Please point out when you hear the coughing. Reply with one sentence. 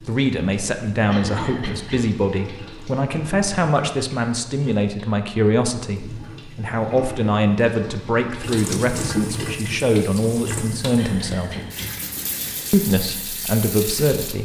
The coughing can be heard from 1.1 to 2.0 s and from 10.9 to 12.0 s.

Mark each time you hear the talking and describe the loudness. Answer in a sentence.
The talking can be heard from 0.1 to 11.6 s, at a steady volume; and briefly from 12.7 to 14.4 s.